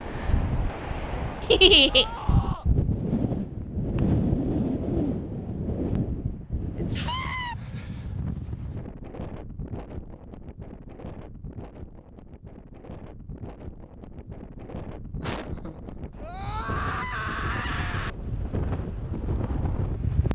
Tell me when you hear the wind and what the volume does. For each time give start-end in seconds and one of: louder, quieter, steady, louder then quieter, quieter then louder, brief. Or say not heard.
0.0-20.3 quieter then louder.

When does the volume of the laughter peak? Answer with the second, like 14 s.
2 s.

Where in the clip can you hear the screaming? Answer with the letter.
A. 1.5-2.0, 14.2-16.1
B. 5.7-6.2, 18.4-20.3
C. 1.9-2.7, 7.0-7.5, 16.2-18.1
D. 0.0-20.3
C.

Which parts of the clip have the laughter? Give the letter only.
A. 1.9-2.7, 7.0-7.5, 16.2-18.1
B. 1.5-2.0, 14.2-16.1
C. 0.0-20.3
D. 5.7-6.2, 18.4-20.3
B.